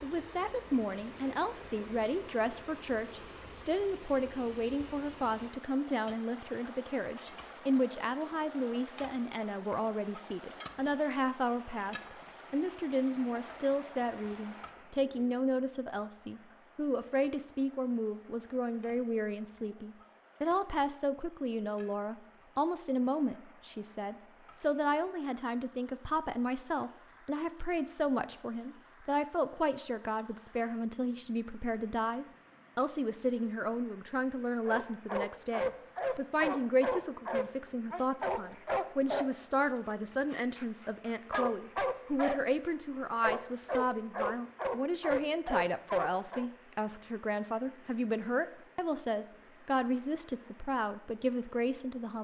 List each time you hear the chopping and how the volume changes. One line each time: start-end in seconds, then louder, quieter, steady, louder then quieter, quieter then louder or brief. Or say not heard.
not heard.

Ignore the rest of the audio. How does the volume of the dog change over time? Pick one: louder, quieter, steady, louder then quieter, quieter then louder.
steady.